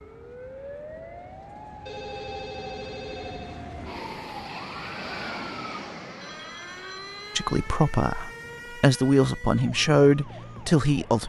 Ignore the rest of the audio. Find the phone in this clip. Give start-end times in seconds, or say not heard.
1.9-3.6, 6.2-7.6.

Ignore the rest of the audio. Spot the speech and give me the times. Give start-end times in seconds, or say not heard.
7.3-11.2.